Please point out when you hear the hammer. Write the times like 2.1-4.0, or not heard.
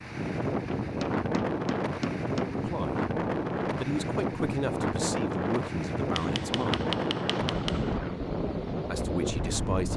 0.7-2.6, 6.1-8.0.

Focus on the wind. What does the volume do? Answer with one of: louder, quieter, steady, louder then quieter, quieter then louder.
steady.